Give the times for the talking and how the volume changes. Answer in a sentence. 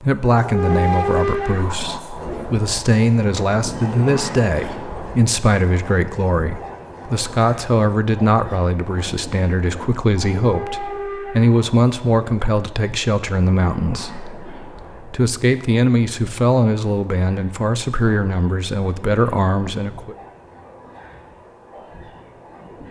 You can hear the talking from 0.0 to 20.1 s, at a steady volume.